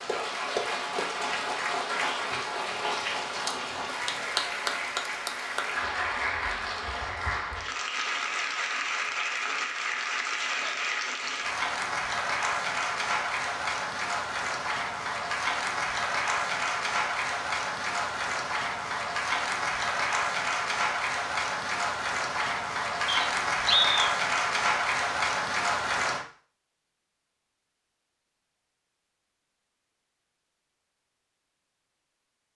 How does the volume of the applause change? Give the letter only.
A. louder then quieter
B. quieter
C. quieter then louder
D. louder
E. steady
E.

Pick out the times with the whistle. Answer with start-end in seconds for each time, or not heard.
23.1-24.1.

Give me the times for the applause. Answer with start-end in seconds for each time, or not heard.
0.0-26.2.